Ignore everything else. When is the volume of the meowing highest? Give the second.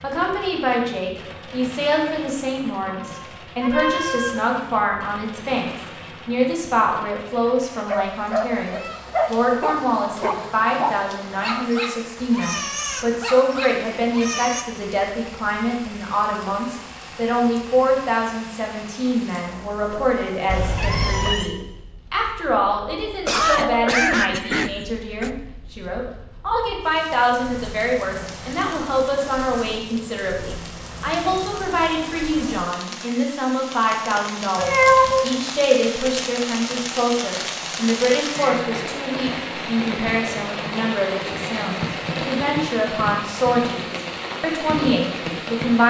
35 s.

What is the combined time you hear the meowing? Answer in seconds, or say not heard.
3 s.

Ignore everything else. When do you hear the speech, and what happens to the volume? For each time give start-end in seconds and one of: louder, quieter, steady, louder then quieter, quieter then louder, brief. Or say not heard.
0.0-45.8 steady.